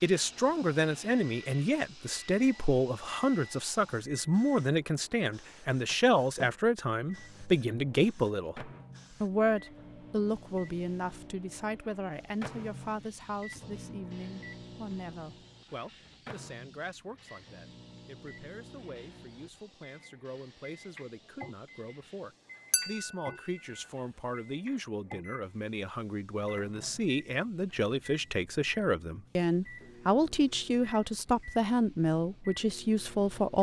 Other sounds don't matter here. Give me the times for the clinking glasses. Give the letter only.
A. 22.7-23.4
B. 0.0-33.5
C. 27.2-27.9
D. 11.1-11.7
A.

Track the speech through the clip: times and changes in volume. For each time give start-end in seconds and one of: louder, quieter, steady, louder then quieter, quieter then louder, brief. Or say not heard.
0.0-33.5 quieter then louder.